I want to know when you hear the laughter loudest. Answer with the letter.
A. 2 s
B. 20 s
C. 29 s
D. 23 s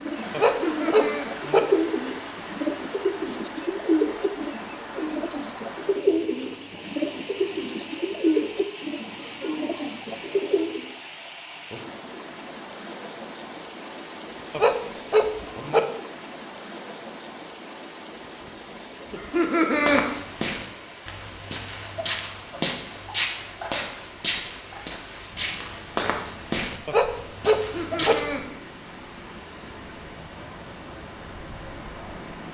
B.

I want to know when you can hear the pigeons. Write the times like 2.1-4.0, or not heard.
0.0-10.9.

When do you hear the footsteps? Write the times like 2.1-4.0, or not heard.
19.7-28.4.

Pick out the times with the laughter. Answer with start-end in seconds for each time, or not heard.
0.6-1.3, 19.1-20.0, 27.6-28.4.